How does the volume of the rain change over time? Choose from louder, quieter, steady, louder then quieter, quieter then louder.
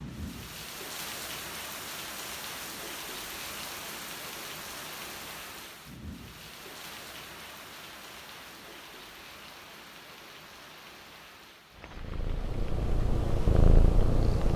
quieter.